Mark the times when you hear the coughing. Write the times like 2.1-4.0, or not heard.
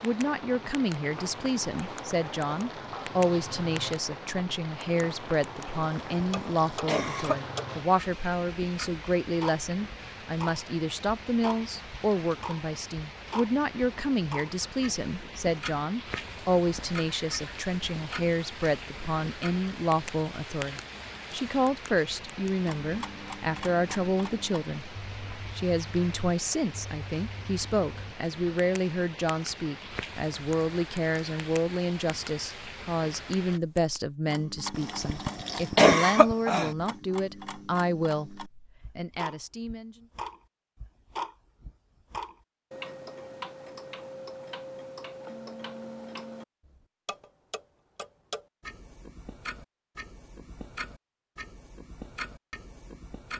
5.8-7.4, 34.7-36.7.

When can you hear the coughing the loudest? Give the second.
36 s.